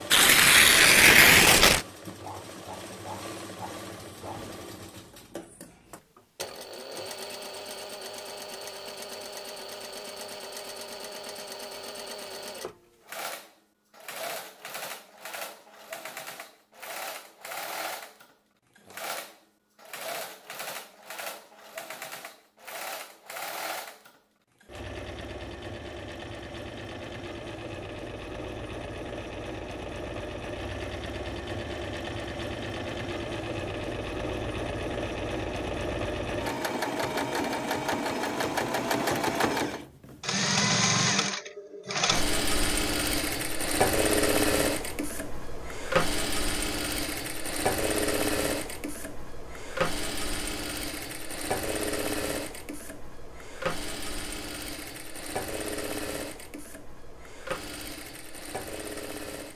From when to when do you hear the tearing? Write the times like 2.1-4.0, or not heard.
0.1-1.9.